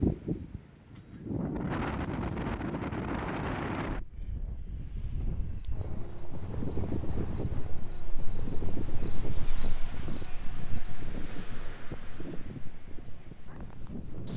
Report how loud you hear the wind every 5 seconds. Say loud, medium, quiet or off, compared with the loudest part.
loud, medium, medium.